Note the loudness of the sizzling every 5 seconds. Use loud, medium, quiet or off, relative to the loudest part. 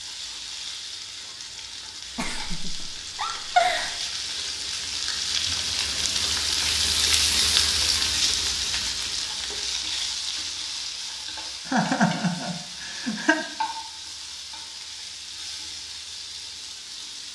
medium, loud, medium, quiet.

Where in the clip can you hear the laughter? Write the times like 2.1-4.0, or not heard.
2.1-4.0, 11.7-13.4.